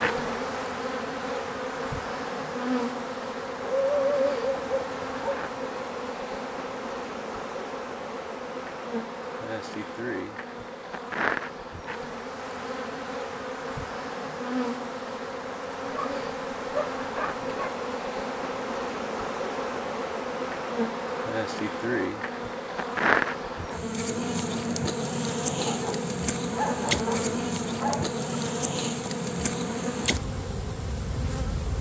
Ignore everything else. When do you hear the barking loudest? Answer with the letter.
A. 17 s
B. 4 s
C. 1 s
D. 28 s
B.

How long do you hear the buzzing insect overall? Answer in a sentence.
The buzzing insect can be heard for 32 seconds in total.